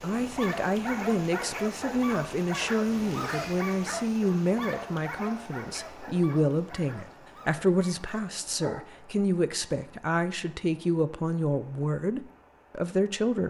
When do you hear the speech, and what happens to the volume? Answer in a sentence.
You can hear the speech from 0.0 to 13.4 s, at a steady volume.